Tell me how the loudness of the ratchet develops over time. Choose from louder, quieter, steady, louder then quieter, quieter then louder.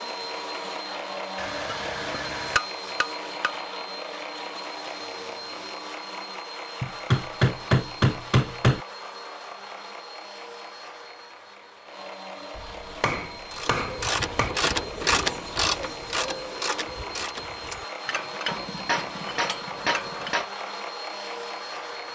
quieter.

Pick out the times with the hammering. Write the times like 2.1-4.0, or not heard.
1.4-3.5, 6.8-8.8, 12.6-14.5, 18.4-20.4.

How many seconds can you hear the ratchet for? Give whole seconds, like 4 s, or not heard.
7 s.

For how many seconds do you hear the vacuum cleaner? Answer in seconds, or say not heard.
22 s.